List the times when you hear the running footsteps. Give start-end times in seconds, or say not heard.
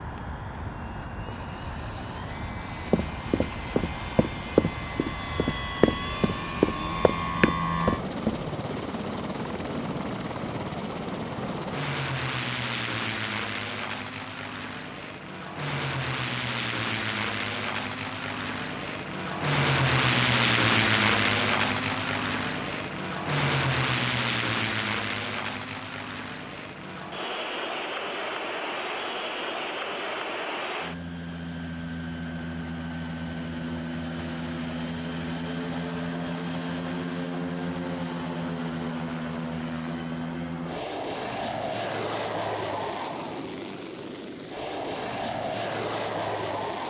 2.9-8.4.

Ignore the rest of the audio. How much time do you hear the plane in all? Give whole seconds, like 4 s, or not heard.
47 s.